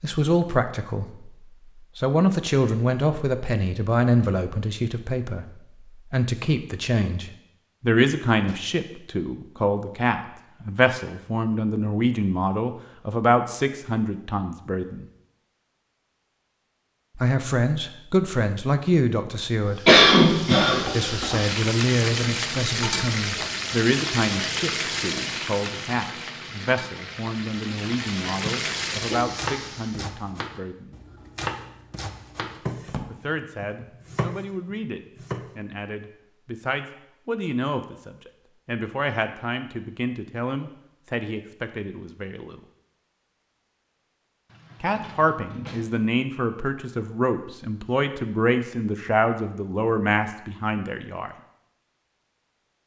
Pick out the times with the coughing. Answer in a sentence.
The coughing can be heard from 19.9 to 21.2 s.